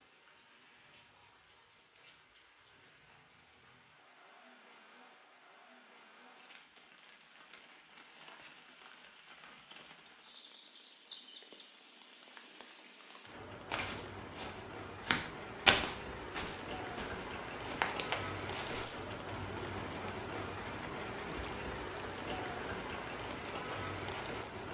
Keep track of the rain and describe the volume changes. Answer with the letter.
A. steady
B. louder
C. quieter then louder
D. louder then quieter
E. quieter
B.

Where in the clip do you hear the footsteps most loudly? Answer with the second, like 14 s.
16 s.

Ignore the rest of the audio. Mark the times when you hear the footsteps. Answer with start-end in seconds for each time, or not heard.
13.7-19.1.